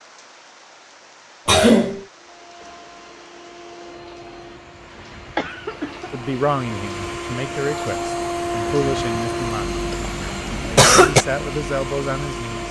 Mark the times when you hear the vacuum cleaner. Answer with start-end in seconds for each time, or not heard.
2.1-12.6.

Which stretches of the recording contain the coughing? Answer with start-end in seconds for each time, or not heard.
1.4-2.0, 5.3-6.1, 9.9-11.2.